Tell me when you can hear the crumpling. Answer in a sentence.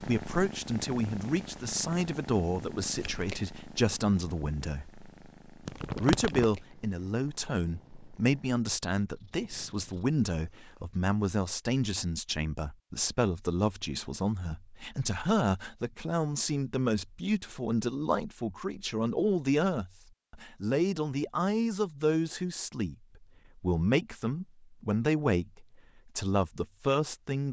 The crumpling can be heard from 5.7 to 6.5 s.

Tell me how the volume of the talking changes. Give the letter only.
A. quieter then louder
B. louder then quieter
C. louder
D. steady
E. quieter
D.